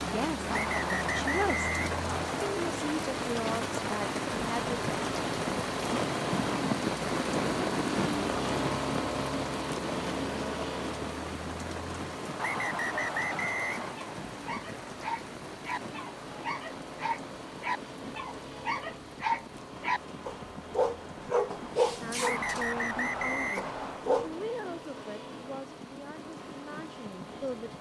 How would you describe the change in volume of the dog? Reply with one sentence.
The loudness of the dog goes up, then down.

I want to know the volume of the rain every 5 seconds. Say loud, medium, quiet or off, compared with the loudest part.
loud, loud, medium, quiet, quiet, quiet.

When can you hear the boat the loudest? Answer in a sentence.
The volume of the boat peaks at 8 seconds.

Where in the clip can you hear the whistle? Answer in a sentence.
The whistle can be heard from 0.5 to 2.5 s, from 12.3 to 13.9 s and from 22.2 to 24.1 s.